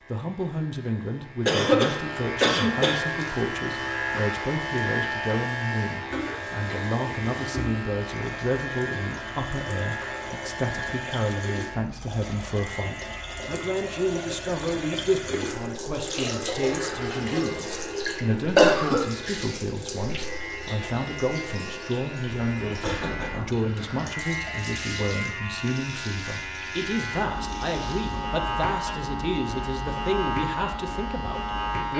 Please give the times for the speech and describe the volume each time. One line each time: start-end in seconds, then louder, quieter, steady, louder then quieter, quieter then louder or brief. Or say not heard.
0.1-31.9 steady.